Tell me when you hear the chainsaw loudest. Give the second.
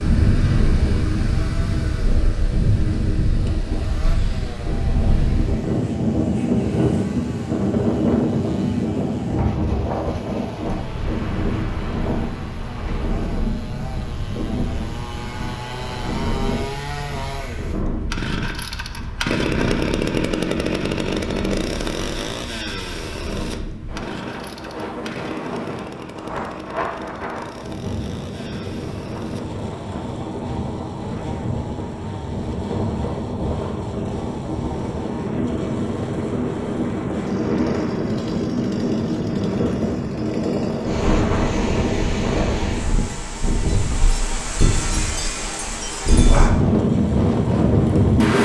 20 s.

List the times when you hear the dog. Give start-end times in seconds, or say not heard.
not heard.